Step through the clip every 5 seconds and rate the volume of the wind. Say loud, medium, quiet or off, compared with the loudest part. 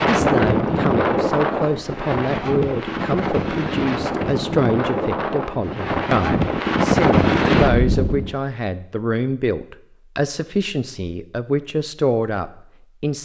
loud, loud, off.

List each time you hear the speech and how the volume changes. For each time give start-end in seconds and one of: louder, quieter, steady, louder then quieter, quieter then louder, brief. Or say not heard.
0.1-13.2 steady.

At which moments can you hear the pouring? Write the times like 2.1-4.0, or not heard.
not heard.